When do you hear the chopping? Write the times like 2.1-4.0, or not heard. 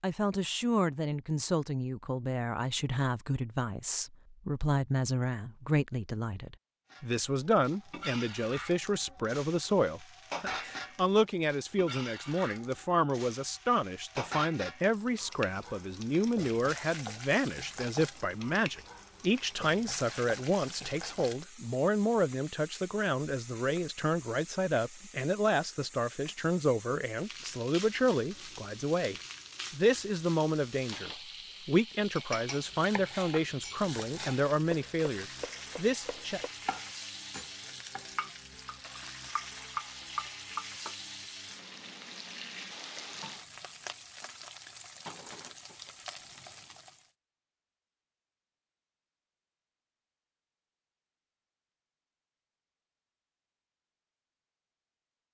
32.6-41.0.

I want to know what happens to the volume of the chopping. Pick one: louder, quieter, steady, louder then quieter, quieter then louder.
louder.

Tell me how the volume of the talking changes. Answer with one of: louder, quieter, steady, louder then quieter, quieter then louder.
steady.